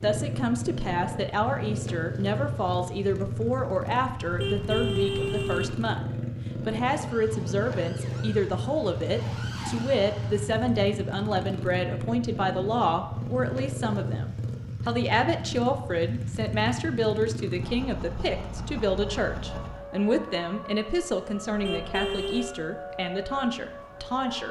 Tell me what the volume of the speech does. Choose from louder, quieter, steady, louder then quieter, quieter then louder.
steady.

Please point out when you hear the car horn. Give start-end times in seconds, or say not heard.
4.2-5.8, 21.5-22.6.